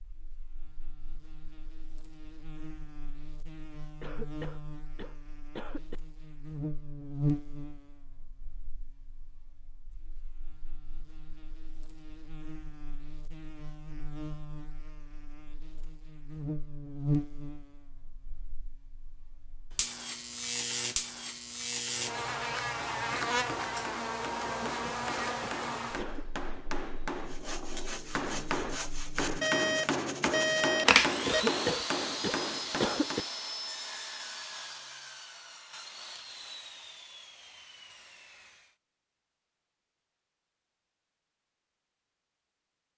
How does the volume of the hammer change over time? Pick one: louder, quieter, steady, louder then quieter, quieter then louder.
louder.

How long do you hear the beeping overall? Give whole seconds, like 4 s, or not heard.
2 s.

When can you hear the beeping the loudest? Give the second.
31 s.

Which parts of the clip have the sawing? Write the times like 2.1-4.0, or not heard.
27.1-38.8.